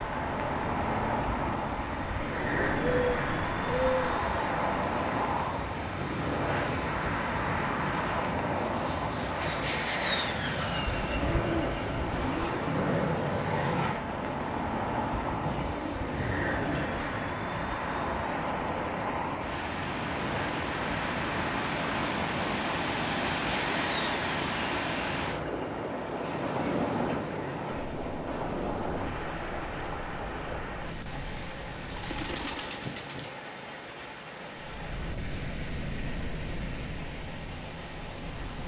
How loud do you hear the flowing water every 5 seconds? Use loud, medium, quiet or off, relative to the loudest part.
medium, medium, medium, medium, loud, loud, medium, medium.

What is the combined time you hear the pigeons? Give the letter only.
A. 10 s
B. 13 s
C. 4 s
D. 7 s
A.